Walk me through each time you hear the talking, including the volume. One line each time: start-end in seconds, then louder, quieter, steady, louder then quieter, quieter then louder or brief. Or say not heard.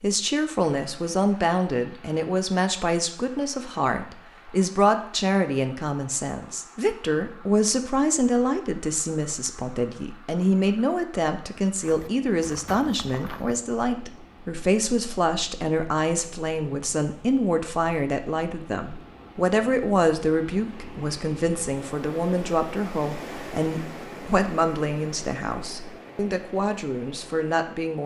0.0-28.0 steady.